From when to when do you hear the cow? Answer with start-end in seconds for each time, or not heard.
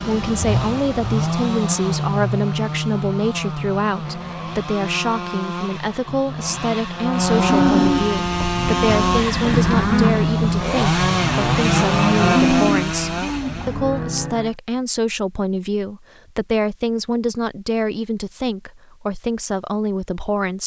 6.9-14.5.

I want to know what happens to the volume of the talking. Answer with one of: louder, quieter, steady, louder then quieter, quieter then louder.
steady.